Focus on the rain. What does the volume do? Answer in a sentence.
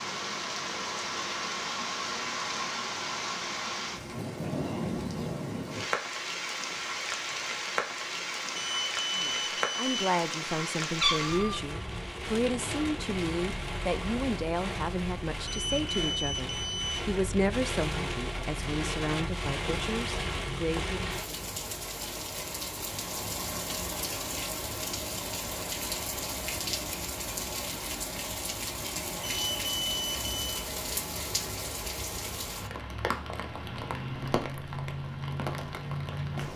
The volume of the rain stays about the same.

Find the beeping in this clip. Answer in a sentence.
The beeping can be heard from 8.6 to 10.1 s, from 15.4 to 17.1 s and from 29.2 to 30.6 s.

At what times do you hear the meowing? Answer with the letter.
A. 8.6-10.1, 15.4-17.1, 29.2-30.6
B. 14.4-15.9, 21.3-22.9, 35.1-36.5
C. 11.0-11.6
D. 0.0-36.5
C.